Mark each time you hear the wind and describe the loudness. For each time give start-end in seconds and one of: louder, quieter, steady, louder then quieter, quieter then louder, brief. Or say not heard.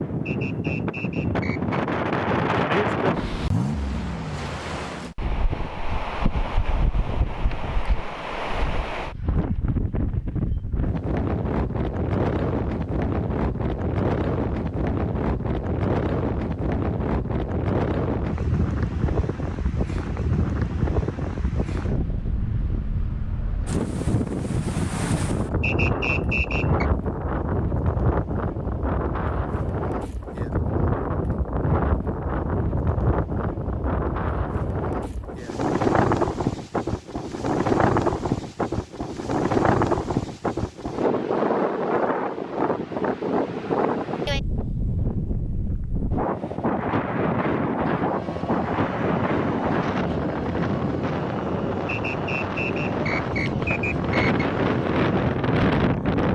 0.0-56.3 steady.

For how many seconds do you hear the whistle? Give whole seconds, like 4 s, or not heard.
5 s.